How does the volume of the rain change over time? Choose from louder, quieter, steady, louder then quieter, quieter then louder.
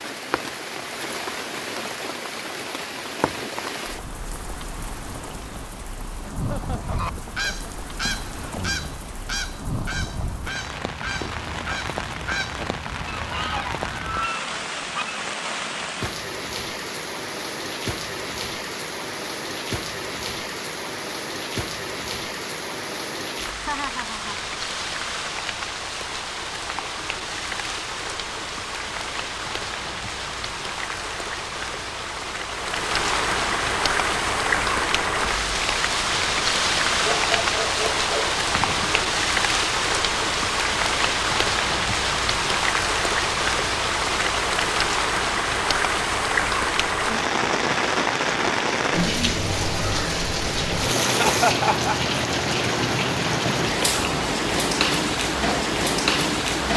louder.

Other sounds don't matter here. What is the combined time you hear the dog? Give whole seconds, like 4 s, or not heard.
2 s.